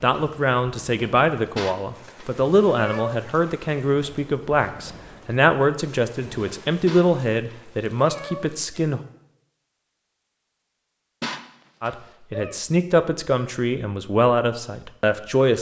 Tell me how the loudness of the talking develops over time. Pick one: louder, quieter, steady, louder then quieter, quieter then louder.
steady.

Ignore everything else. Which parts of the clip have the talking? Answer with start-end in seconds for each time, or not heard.
0.0-9.0, 11.8-15.5.